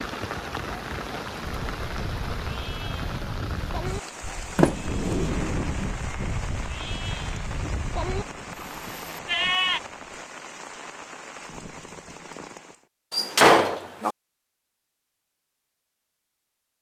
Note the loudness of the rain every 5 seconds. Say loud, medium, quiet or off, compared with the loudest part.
loud, loud, medium, off.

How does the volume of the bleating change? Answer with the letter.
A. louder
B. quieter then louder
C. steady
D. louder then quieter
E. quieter
A.